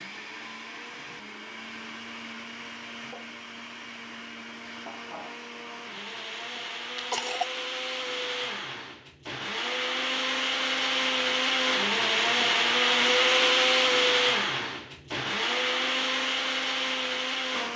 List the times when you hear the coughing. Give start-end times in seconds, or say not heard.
7.0-7.6.